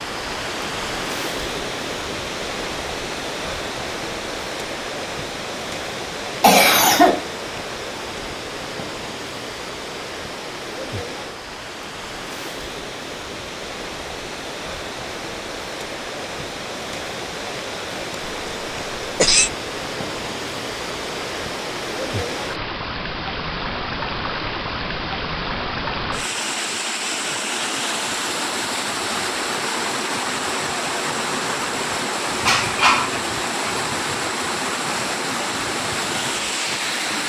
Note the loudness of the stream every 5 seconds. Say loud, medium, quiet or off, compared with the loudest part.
loud, medium, medium, medium, loud, loud, loud, loud.